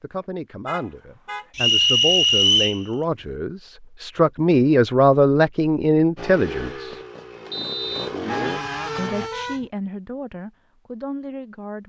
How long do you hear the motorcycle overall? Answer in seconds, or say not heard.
3 s.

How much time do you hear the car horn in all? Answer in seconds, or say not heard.
2 s.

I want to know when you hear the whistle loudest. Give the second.
2 s.